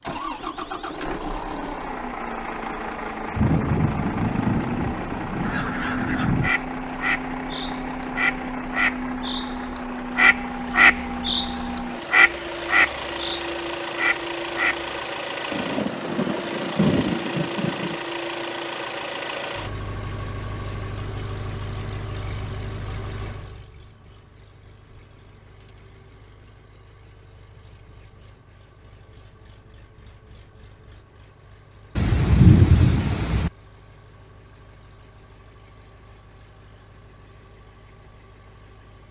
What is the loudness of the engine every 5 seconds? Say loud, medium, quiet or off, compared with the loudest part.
loud, loud, loud, loud, medium, quiet, quiet, quiet.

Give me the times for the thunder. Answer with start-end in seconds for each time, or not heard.
3.3-6.5, 15.5-18.0, 31.9-33.5.